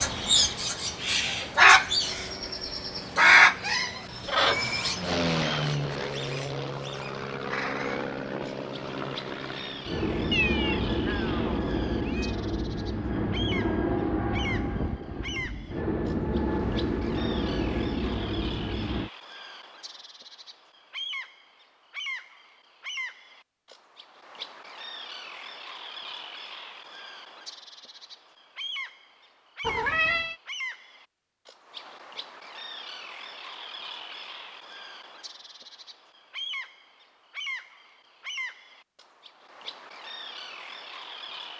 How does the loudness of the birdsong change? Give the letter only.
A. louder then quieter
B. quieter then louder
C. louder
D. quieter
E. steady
D.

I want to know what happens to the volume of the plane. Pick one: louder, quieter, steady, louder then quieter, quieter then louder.
louder.